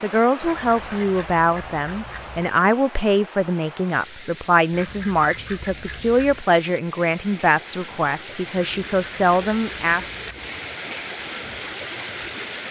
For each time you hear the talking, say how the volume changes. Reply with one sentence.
The talking can be heard from 0.0 to 10.1 s, at a steady volume.